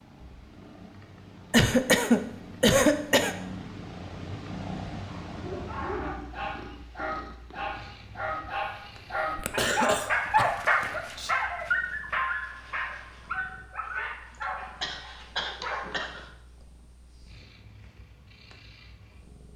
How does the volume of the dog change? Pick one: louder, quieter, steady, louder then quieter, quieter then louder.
louder then quieter.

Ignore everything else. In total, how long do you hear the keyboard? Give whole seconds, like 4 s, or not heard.
not heard.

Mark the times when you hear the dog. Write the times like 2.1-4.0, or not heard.
5.2-16.1.